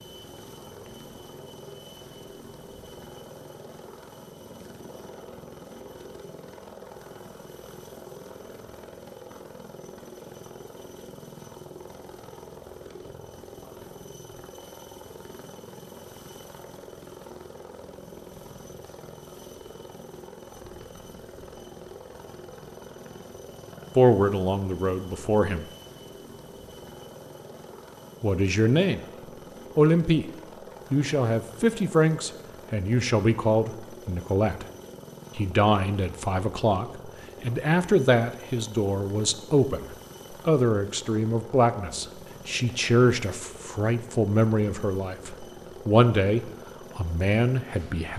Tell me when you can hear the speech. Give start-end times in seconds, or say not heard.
23.9-25.6, 28.2-29.0, 29.8-30.2, 30.9-34.6, 35.4-48.1.